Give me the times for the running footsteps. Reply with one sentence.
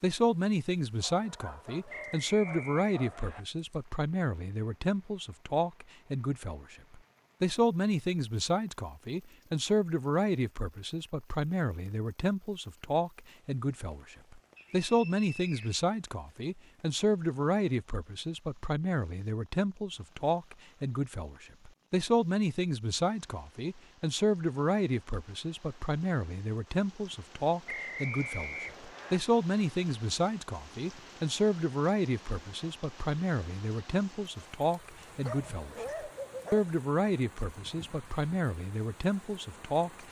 You can't hear the running footsteps here.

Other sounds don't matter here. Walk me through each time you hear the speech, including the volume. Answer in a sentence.
The speech can be heard from 0.0 to 40.0 s, at a steady volume.